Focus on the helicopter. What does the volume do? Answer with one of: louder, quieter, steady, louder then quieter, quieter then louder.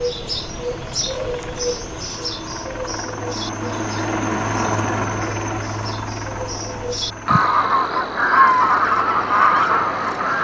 louder then quieter.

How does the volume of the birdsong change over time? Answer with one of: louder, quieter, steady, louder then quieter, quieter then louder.
quieter then louder.